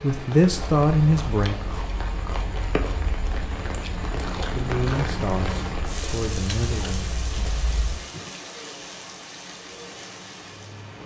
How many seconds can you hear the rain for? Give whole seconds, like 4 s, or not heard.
11 s.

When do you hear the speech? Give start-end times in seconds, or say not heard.
0.0-1.6, 4.5-7.5.